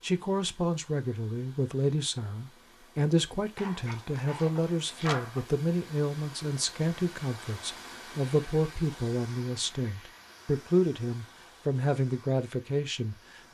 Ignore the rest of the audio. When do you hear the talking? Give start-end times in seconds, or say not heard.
0.0-13.4.